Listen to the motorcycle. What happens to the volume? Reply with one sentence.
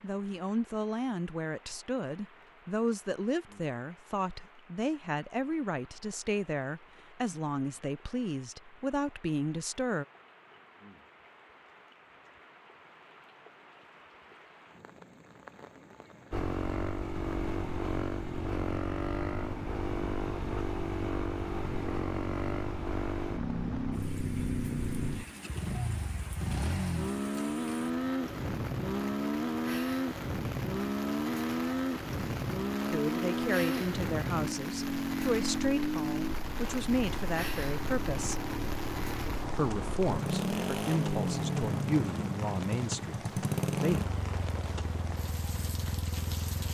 The loudness of the motorcycle stays about the same.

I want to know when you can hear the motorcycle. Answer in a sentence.
You can hear the motorcycle from 16.3 to 46.6 s.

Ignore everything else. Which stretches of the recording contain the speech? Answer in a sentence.
You can hear the speech from 0.0 to 10.1 s, from 32.9 to 38.5 s and from 39.5 to 44.0 s.